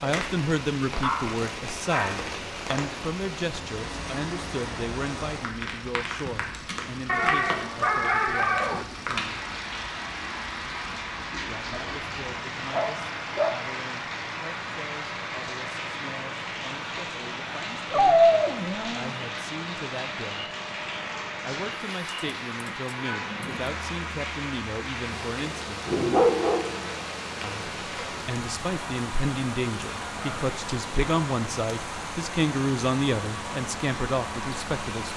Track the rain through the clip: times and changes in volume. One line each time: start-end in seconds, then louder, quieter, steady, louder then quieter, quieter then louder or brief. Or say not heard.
0.0-35.1 steady.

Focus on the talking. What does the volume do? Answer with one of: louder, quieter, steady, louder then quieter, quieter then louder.
quieter then louder.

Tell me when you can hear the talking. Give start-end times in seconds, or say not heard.
0.0-9.4, 11.4-20.5, 21.4-25.9, 27.4-35.1.